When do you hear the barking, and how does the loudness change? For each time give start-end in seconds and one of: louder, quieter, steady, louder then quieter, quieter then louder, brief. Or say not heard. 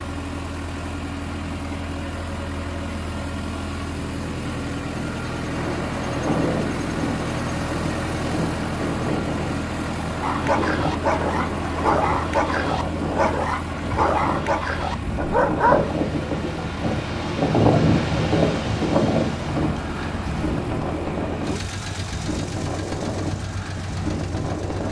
10.2-15.8 steady.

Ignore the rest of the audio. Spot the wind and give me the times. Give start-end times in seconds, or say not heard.
5.5-24.8.